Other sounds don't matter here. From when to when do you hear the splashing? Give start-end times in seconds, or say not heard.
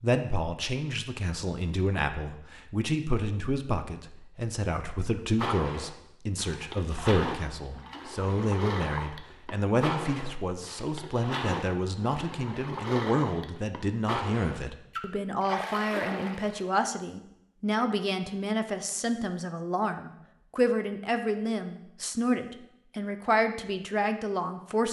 5.0-16.6.